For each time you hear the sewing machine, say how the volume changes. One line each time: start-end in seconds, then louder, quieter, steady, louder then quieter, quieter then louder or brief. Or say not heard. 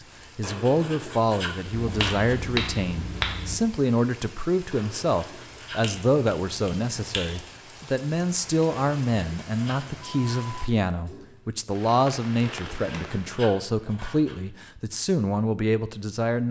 not heard.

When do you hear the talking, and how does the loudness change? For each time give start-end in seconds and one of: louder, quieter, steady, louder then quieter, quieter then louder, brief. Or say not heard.
0.3-16.4 steady.